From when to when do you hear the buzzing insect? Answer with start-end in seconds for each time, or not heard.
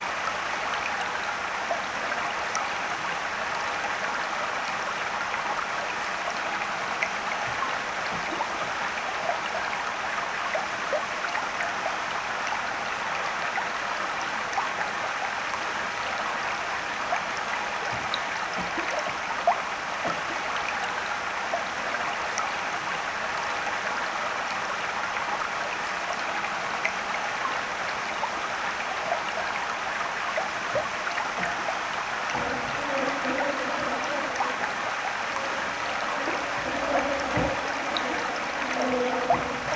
32.3-39.7.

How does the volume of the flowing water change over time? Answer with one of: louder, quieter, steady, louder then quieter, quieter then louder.
steady.